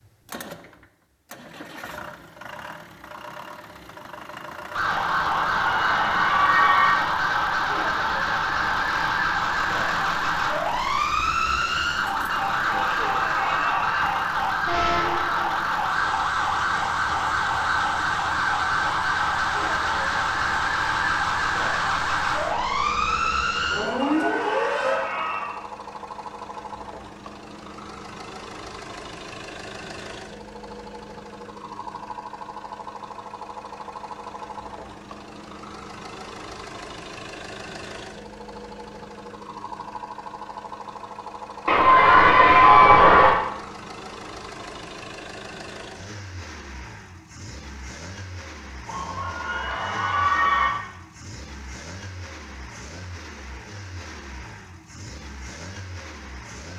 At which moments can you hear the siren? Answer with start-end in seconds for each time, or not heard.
4.7-25.0.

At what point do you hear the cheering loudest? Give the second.
43 s.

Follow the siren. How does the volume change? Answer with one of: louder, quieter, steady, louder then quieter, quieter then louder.
steady.